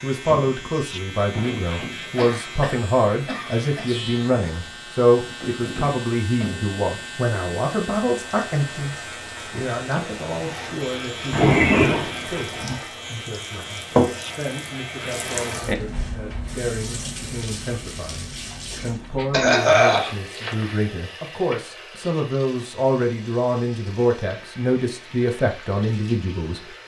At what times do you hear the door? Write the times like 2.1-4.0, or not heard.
not heard.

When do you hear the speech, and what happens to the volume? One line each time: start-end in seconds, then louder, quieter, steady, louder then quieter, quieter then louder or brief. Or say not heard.
0.0-26.8 quieter then louder.